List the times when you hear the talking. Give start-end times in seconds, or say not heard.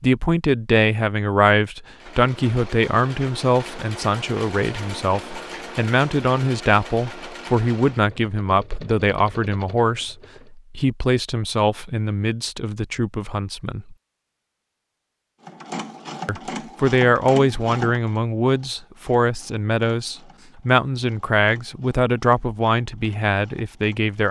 0.0-13.9, 16.2-24.2.